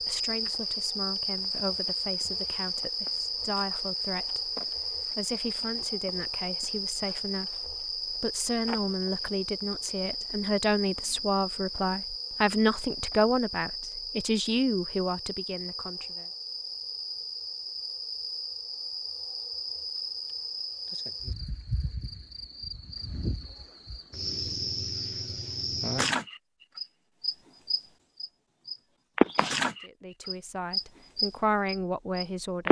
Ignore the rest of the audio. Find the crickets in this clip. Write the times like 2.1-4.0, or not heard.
0.0-32.6.